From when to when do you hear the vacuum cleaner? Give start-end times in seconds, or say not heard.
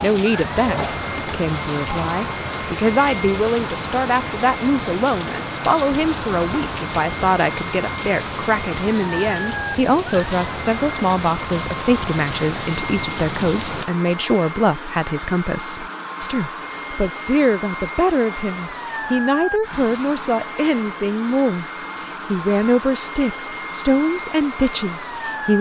0.2-25.5.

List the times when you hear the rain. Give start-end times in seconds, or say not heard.
0.0-13.9.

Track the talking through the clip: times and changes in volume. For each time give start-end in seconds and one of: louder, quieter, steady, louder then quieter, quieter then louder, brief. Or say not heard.
0.0-25.5 steady.